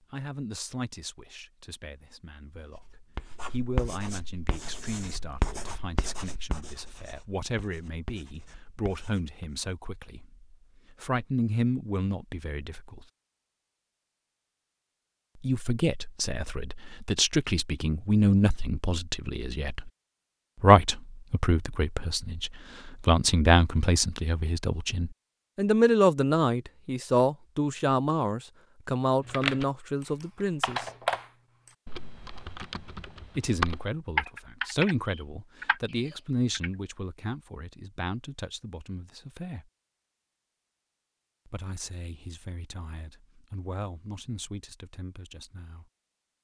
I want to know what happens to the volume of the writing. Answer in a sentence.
The volume of the writing goes down, then up.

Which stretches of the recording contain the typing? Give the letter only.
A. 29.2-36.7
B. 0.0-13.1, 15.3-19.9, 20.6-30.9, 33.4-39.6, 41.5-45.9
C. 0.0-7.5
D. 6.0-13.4
A.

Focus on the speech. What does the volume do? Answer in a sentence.
The loudness of the speech goes up, then down.